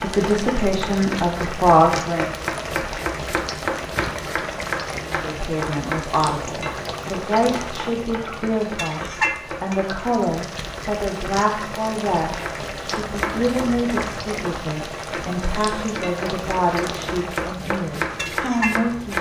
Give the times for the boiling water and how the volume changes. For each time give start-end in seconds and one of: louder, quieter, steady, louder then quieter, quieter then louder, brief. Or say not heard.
0.0-19.1 steady.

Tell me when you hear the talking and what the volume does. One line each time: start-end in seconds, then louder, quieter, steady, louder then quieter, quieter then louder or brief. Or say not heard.
0.0-2.4 brief
5.0-19.1 steady.